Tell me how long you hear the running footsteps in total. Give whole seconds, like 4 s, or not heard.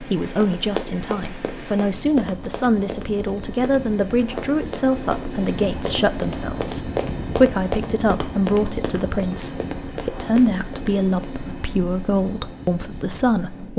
11 s.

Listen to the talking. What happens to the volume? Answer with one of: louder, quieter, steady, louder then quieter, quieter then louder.
steady.